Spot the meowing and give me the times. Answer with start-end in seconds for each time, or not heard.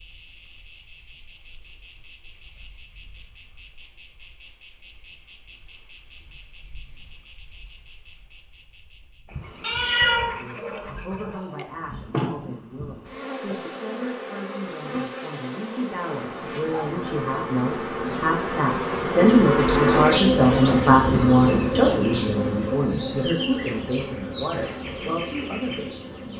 9.6-11.7, 19.2-20.7.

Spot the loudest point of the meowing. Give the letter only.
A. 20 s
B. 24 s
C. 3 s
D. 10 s
D.